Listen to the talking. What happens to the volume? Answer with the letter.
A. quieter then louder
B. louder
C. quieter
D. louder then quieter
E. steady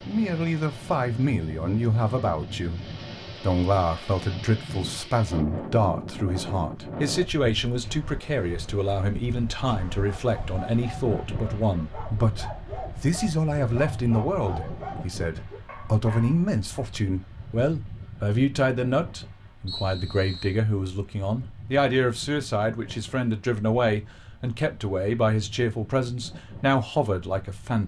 E.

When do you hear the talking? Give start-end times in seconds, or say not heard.
0.1-27.8.